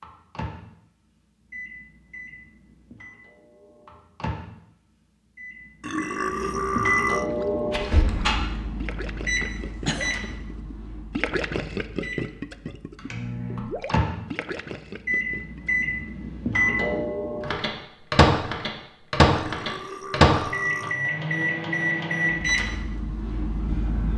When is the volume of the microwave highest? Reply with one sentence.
The loudest moment of the microwave is at 20 seconds.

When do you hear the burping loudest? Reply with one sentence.
The volume of the burping peaks at 7 seconds.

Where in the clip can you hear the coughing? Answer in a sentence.
The coughing can be heard from 9.4 to 10.3 s.